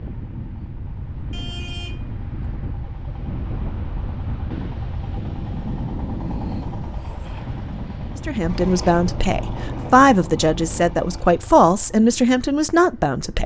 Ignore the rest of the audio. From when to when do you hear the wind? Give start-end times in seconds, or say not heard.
0.0-10.9.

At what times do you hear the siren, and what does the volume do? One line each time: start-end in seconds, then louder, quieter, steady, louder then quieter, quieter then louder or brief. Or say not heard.
not heard.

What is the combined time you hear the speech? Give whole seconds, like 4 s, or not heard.
5 s.